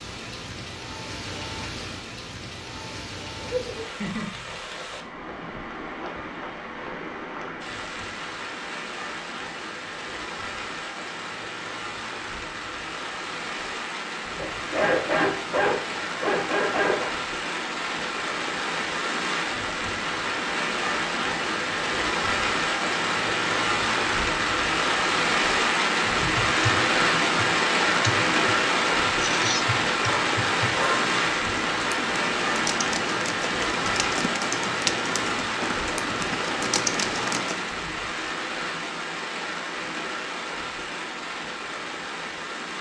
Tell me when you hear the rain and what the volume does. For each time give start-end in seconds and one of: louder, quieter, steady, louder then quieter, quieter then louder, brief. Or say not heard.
0.0-42.7 louder then quieter.